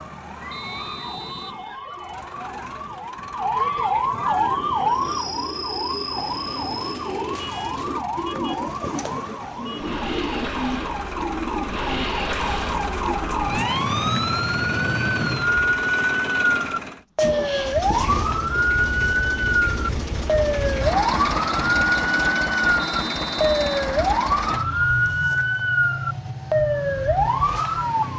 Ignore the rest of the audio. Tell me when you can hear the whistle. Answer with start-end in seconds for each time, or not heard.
0.5-1.6, 22.8-23.8.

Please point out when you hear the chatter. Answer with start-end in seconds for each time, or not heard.
not heard.